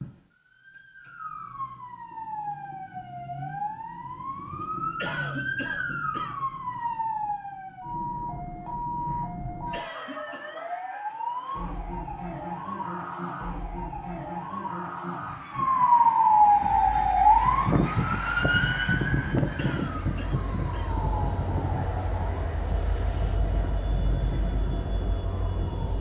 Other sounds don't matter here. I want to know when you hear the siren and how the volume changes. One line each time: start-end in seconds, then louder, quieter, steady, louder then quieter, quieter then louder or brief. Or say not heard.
0.0-25.9 louder then quieter.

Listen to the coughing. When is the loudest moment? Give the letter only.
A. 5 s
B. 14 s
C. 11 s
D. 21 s
A.